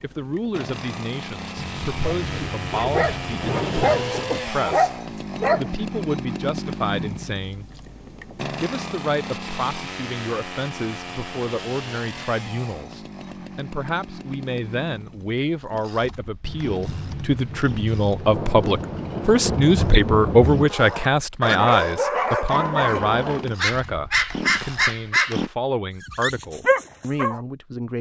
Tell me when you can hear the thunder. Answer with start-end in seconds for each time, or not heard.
1.6-4.1, 16.4-20.7.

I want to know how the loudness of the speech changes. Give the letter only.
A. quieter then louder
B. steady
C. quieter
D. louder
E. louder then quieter
E.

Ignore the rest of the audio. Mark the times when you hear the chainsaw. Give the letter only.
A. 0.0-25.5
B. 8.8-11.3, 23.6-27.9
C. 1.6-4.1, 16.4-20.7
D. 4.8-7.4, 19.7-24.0
A.